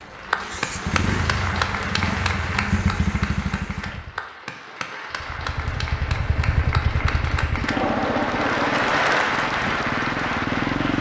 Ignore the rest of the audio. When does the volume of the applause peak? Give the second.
9 s.